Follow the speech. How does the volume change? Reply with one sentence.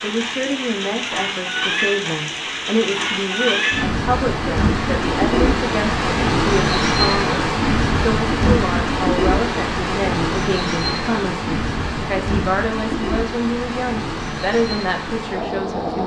The loudness of the speech stays about the same.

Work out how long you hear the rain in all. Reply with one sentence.
You can hear the rain for 16 seconds altogether.